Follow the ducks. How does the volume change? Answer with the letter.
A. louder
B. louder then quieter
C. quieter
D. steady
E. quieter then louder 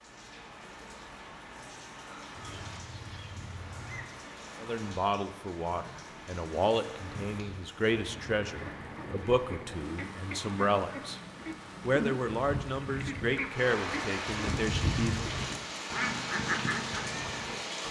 A.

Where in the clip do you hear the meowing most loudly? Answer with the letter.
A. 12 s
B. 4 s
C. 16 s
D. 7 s
B.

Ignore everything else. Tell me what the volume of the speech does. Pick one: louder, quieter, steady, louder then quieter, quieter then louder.
steady.